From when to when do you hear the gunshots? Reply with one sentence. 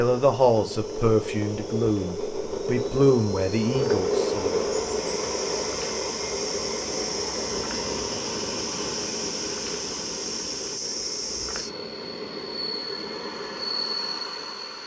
You can't hear the gunshots here.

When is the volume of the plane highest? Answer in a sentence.
The volume of the plane peaks at 4 seconds.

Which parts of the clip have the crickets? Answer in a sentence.
The crickets can be heard from 0.0 to 14.8 s.